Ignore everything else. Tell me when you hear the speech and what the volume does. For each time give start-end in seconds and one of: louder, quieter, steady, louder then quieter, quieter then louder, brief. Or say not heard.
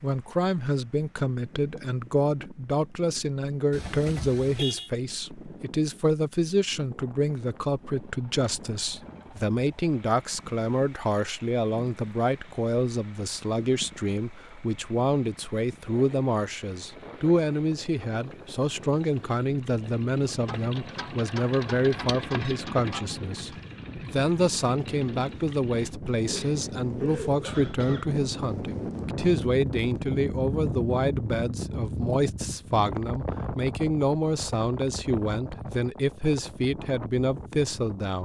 0.0-38.1 steady.